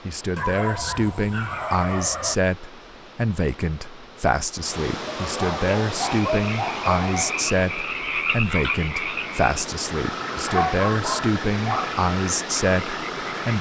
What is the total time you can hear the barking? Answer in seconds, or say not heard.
6 s.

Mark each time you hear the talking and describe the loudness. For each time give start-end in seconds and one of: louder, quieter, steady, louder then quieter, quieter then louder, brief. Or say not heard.
0.1-13.5 steady.